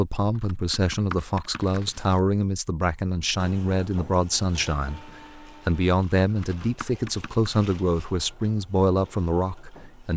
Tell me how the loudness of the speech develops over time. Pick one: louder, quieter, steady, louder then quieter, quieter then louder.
steady.